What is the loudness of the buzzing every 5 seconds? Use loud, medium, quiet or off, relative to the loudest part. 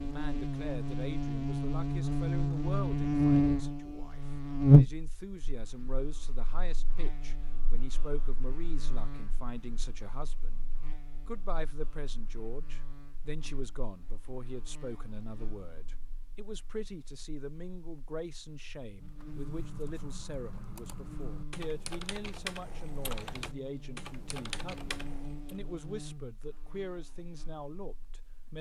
loud, quiet, quiet, quiet, quiet, quiet.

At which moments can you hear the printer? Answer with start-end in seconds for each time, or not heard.
not heard.